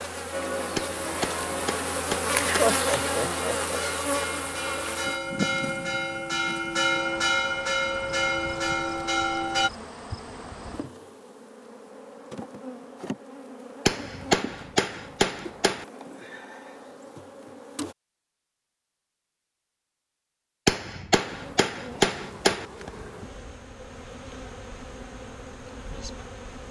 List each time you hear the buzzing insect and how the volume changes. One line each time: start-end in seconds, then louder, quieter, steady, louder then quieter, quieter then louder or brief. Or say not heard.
0.0-17.9 quieter
21.2-26.6 steady.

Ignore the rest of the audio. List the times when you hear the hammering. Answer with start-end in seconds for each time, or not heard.
0.8-2.8, 13.8-15.8, 20.6-22.6.